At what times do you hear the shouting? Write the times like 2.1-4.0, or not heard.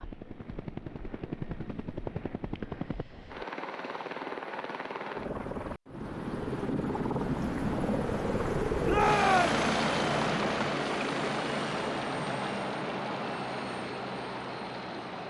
8.8-9.6.